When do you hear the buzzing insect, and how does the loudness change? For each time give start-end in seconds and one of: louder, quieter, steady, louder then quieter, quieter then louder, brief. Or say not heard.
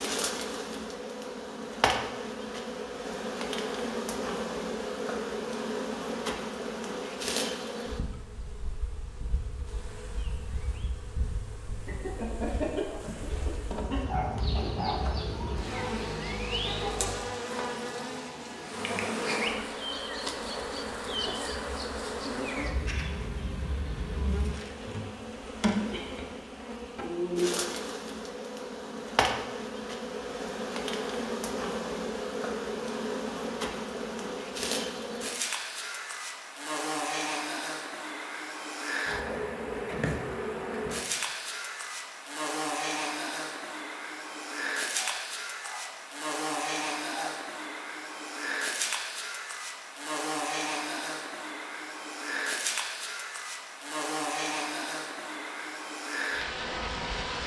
0.0-57.4 steady.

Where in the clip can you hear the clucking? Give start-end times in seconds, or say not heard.
11.8-17.3.